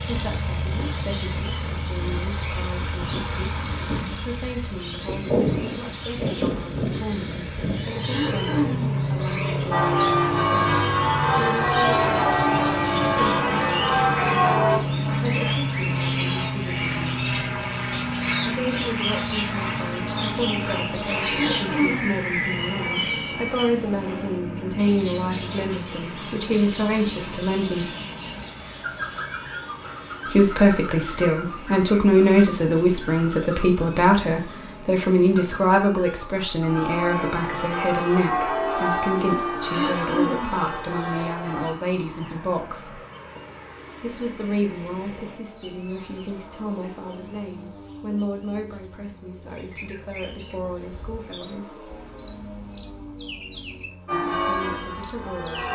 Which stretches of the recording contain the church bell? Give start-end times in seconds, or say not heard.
9.7-14.8, 36.6-41.8, 54.0-55.7.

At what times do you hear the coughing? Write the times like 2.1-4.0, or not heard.
8.1-9.0, 21.2-22.1, 39.6-40.5.